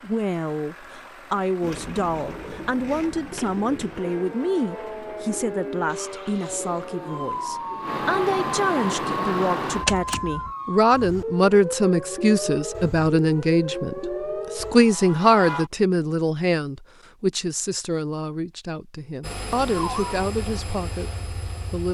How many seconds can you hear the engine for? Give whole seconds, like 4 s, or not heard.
13 s.